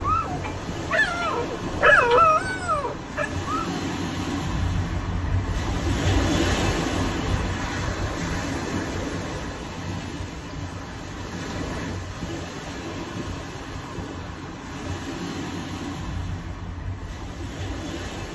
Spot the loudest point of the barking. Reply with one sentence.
The loudest moment of the barking is at 2 seconds.